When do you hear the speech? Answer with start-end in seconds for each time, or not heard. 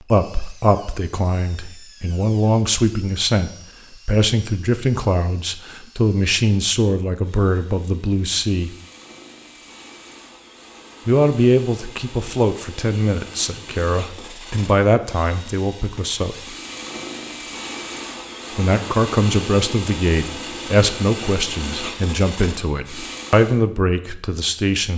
0.1-8.8, 11.1-16.6, 18.6-24.9.